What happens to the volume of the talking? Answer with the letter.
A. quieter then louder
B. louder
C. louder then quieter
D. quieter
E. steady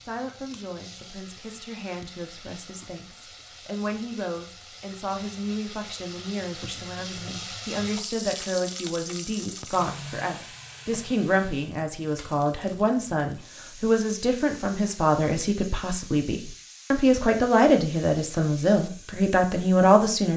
B.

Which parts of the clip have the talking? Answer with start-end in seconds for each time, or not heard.
0.0-20.3.